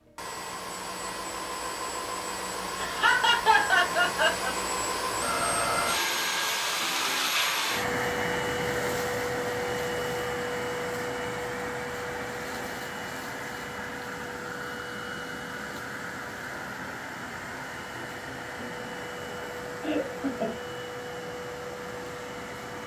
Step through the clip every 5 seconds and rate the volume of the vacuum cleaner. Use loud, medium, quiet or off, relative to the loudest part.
medium, loud, medium, medium, medium.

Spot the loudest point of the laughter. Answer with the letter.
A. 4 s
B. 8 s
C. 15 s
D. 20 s
A.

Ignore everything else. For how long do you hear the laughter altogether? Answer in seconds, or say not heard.
4 s.